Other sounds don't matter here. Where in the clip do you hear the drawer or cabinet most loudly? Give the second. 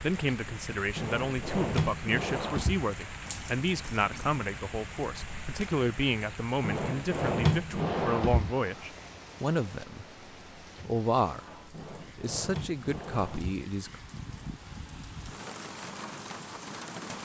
7 s.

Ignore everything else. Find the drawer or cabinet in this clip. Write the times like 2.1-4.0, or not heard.
0.9-2.9, 6.6-8.5, 11.7-13.7.